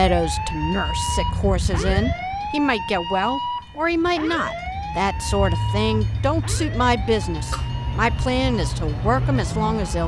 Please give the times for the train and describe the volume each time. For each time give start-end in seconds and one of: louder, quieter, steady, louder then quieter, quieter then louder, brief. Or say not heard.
0.0-10.0 quieter then louder.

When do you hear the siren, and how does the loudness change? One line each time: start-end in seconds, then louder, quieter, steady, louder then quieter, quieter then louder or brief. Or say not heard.
0.0-10.0 quieter.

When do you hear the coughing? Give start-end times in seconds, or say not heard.
7.2-7.7.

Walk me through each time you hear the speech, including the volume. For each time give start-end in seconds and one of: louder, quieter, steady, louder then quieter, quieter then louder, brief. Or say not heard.
0.0-10.0 steady.